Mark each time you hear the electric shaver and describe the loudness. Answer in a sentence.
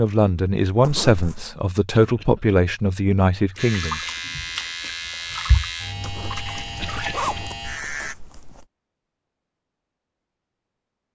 The electric shaver can be heard from 3.5 to 8.2 s, at a steady volume.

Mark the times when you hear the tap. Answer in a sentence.
You can hear the tap from 3.5 to 7.2 s.